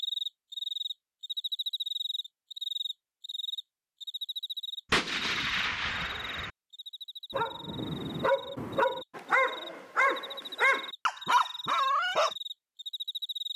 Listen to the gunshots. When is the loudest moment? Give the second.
5 s.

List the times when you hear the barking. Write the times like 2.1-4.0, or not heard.
7.3-12.3.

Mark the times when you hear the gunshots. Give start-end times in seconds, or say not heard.
4.9-6.5.